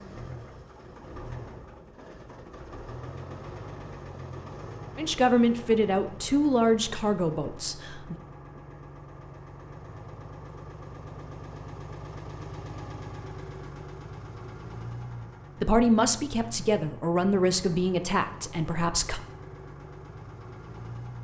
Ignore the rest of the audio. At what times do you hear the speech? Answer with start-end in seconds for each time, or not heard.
5.0-8.2, 15.6-19.2.